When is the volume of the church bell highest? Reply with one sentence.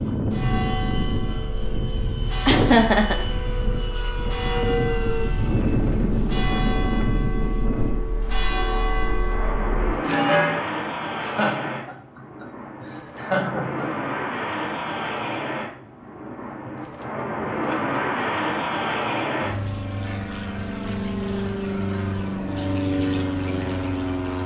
The loudest moment of the church bell is at 10 seconds.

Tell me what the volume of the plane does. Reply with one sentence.
The volume of the plane stays about the same.